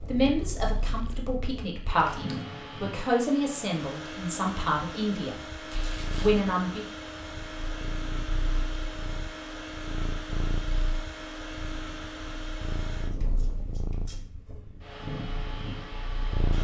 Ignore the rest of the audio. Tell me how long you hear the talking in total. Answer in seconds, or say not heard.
6 s.